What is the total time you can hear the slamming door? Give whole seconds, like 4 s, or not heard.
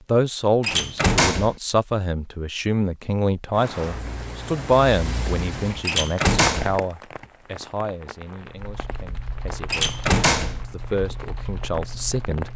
3 s.